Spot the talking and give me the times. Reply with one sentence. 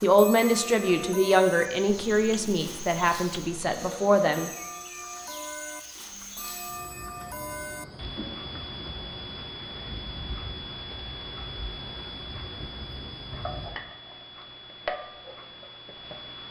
You can hear the talking from 0.0 to 4.5 s.